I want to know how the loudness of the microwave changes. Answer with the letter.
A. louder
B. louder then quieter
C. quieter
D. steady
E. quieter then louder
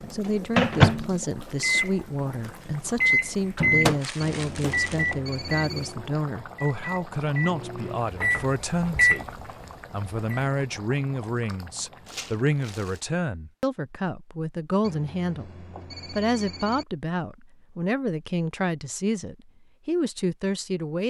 E.